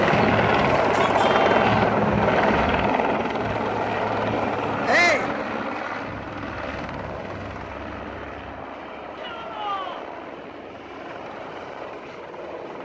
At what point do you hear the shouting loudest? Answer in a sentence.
The volume of the shouting peaks at 5 seconds.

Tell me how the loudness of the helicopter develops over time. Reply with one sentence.
The volume of the helicopter goes down.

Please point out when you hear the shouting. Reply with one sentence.
You can hear the shouting from 0.6 to 1.9 s, from 4.8 to 5.3 s and from 9.2 to 10.1 s.